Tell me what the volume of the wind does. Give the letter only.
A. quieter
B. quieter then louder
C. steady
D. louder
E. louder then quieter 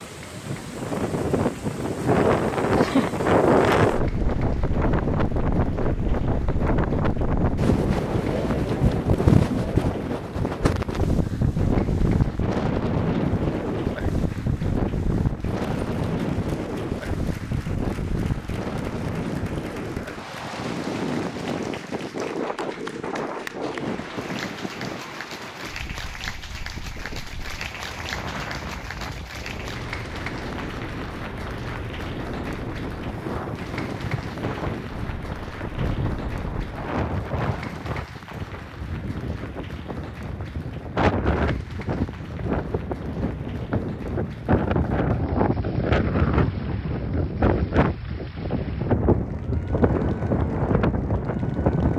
B.